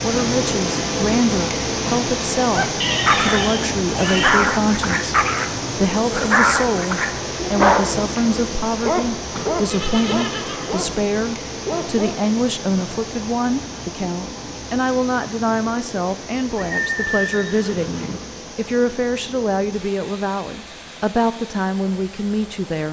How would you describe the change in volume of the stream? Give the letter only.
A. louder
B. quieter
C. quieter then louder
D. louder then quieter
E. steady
B.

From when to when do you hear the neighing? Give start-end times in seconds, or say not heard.
2.8-4.3, 9.3-10.8, 16.6-18.2.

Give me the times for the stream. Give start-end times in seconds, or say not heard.
0.0-22.8.